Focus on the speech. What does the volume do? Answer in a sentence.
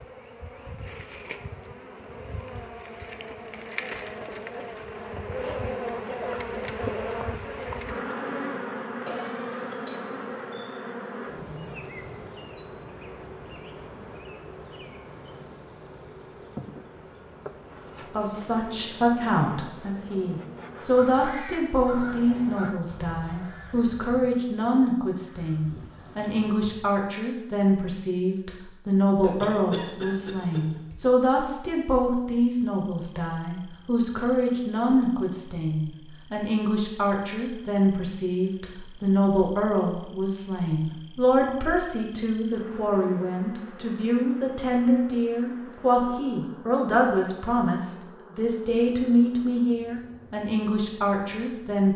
The loudness of the speech stays about the same.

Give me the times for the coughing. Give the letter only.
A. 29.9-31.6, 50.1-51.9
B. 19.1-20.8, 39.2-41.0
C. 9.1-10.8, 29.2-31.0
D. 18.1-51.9
C.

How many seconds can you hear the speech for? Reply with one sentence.
You can hear the speech for 34 seconds altogether.